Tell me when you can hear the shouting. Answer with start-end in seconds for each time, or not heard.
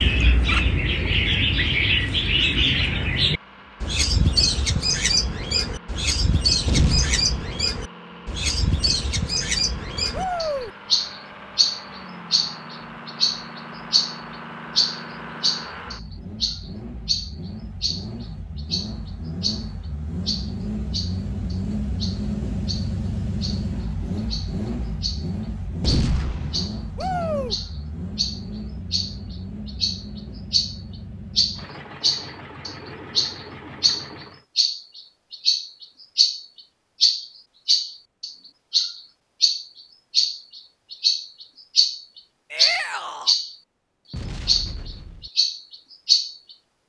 10.1-10.7, 26.9-27.6, 42.5-43.4.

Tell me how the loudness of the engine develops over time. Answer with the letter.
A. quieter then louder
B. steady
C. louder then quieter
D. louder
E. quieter
C.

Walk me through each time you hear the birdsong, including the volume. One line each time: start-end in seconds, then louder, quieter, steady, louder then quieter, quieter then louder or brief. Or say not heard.
0.0-43.5 quieter then louder
44.5-46.4 brief.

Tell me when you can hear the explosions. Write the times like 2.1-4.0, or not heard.
6.7-7.5, 25.8-26.7, 44.1-45.3.